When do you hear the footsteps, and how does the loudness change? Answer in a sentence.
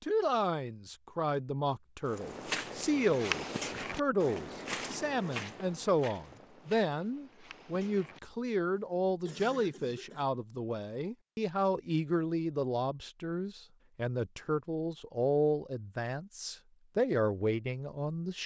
The footsteps can be heard from 2.0 to 8.2 s, getting quieter.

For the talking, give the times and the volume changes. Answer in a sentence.
The talking can be heard from 0.0 to 18.4 s, at a steady volume.